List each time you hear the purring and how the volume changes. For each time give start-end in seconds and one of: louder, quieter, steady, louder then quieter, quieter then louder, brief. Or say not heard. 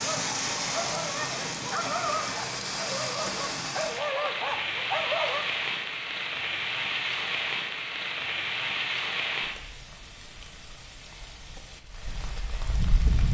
not heard.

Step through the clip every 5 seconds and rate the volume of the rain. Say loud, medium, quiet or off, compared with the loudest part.
loud, loud, medium.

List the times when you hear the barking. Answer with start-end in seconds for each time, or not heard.
0.0-5.5.